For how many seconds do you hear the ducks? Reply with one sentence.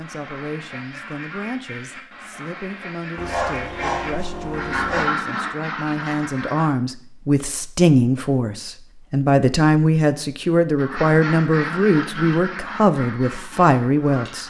The ducks can be heard for 10 seconds in total.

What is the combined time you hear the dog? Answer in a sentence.
The dog can be heard for 2 seconds in total.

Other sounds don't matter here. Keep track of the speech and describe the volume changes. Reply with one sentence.
The volume of the speech goes up.